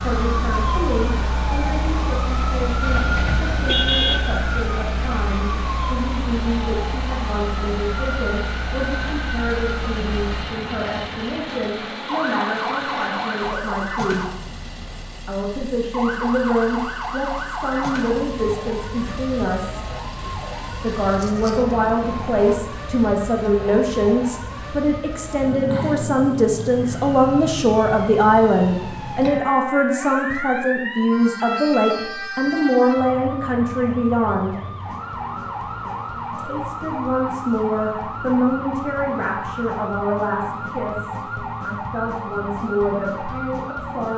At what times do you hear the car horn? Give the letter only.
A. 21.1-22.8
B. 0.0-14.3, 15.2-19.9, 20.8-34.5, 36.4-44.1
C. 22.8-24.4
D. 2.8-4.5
D.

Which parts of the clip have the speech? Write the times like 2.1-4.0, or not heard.
0.0-14.3, 15.2-19.9, 20.8-34.5, 36.4-44.1.